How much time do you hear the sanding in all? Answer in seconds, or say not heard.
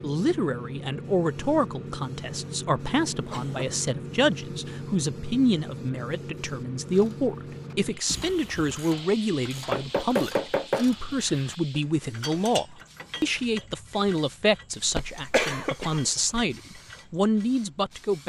2 s.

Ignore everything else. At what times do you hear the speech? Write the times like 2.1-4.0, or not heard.
0.0-18.2.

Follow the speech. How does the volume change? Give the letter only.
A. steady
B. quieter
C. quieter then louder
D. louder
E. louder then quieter
A.